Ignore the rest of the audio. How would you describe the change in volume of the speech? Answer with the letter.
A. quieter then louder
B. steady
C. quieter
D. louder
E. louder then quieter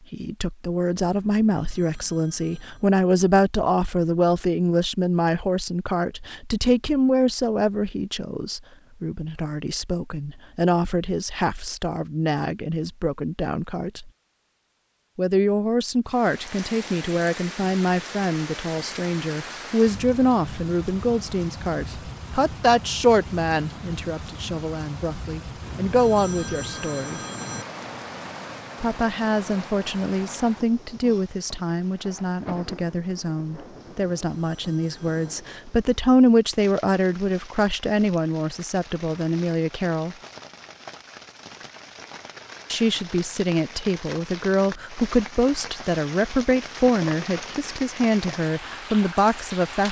B.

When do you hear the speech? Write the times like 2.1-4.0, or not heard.
0.1-14.1, 15.2-27.2, 28.8-40.1, 42.7-49.8.